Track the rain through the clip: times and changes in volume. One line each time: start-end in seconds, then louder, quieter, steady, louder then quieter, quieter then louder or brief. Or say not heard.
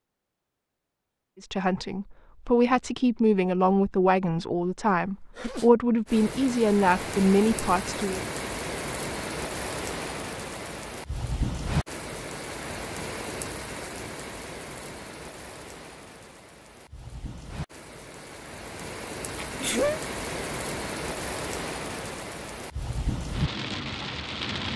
6.0-24.7 quieter then louder.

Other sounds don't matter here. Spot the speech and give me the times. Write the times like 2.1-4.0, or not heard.
1.4-8.2.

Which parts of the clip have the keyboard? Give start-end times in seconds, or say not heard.
not heard.